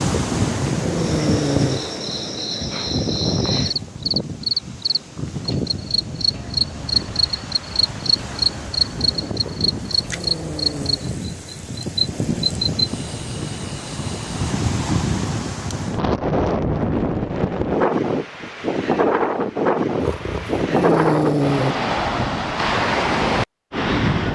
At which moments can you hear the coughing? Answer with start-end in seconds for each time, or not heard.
not heard.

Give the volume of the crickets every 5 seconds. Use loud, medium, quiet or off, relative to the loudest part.
loud, loud, loud, off, off.